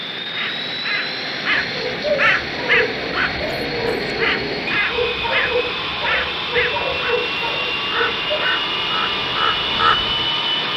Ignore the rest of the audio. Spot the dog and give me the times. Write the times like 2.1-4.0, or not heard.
1.5-8.5.